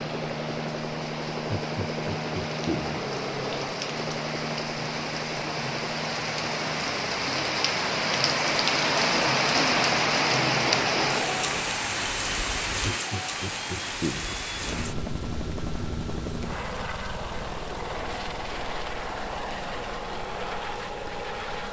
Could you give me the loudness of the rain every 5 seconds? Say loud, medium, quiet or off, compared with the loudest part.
medium, loud, loud, quiet, quiet.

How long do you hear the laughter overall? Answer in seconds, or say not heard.
3 s.